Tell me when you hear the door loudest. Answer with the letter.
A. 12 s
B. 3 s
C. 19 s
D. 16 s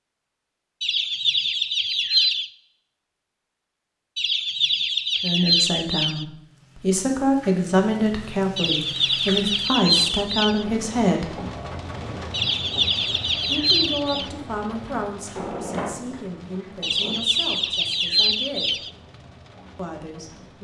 D.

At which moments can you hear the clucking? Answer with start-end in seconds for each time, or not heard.
0.8-2.5, 4.2-6.2, 8.6-10.7, 12.3-14.3, 16.8-18.9.